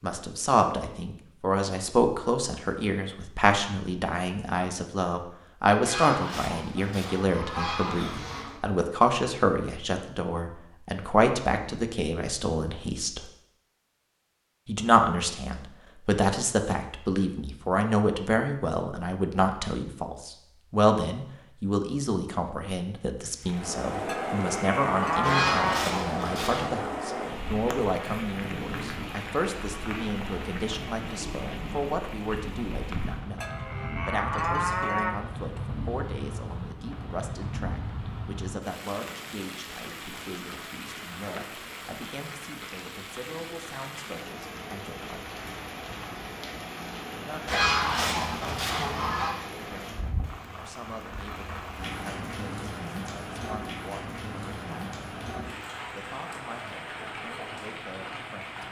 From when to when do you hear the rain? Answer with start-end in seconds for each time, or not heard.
23.4-58.6.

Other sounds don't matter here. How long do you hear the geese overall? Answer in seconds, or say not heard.
6 s.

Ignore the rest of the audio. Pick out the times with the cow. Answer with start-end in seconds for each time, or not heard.
24.1-25.9, 33.4-35.1.